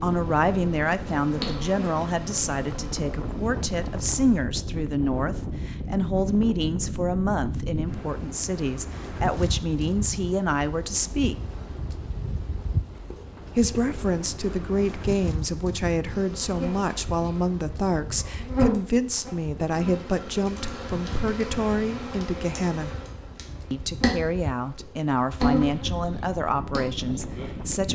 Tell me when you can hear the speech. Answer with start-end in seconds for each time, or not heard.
0.0-11.3, 13.6-22.9, 23.7-27.9.